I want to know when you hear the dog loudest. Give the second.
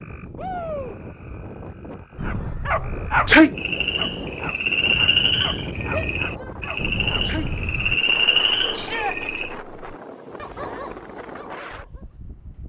3 s.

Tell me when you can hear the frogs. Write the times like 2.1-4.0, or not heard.
0.0-9.6.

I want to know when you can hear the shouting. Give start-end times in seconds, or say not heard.
0.3-0.9, 5.9-6.5, 8.7-9.2.